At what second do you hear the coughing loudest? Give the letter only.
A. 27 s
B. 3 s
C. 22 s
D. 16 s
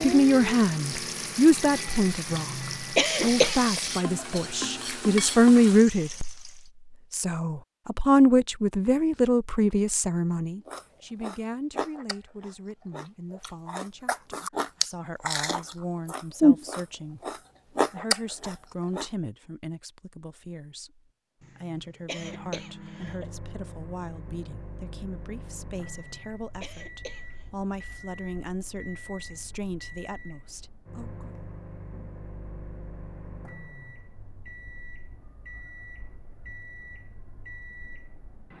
B.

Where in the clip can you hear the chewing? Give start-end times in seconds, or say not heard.
10.7-19.1.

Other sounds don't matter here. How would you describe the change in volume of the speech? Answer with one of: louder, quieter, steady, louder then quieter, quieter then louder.
quieter.